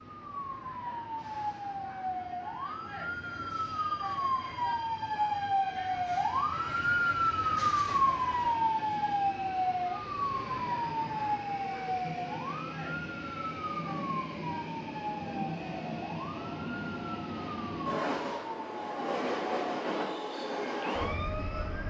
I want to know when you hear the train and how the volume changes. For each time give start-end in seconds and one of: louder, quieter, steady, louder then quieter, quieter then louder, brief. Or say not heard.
0.0-21.8 louder.